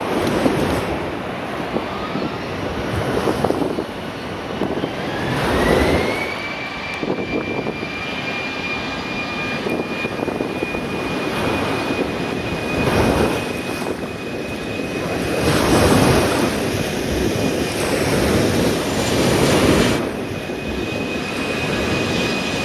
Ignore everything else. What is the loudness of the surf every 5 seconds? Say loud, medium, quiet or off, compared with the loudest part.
medium, medium, medium, loud, medium.